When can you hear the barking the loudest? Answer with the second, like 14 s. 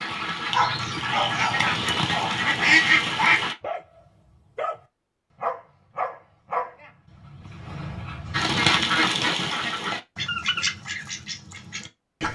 1 s.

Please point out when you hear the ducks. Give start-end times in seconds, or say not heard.
0.0-3.5, 8.3-12.2.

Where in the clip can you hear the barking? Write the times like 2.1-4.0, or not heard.
0.5-4.8, 5.4-8.5.